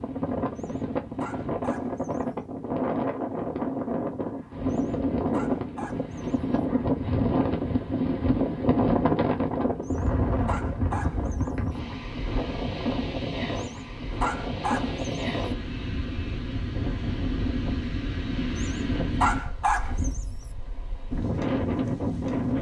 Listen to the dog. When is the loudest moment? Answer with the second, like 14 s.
19 s.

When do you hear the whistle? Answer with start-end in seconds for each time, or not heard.
not heard.